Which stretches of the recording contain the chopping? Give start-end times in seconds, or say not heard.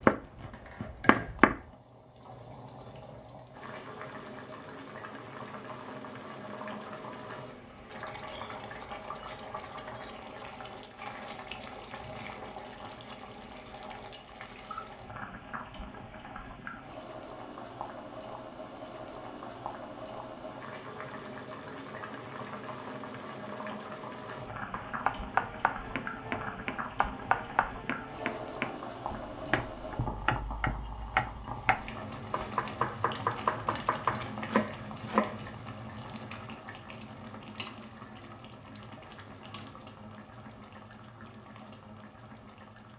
0.0-1.6, 24.7-35.4.